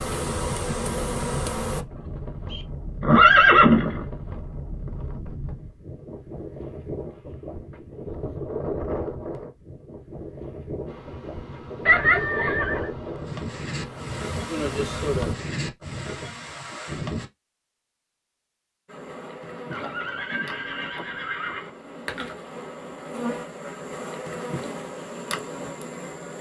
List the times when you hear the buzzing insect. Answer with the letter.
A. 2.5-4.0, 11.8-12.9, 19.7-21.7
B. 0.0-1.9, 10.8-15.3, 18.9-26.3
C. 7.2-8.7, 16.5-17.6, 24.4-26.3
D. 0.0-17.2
B.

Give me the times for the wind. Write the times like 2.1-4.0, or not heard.
0.0-17.2.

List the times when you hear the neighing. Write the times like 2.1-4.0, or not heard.
2.5-4.0, 11.8-12.9, 19.7-21.7.